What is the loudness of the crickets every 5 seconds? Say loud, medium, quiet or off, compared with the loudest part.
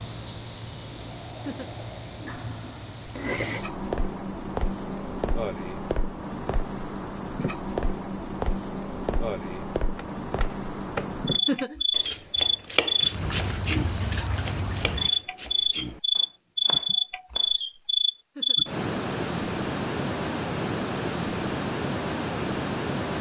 loud, medium, loud, loud, loud.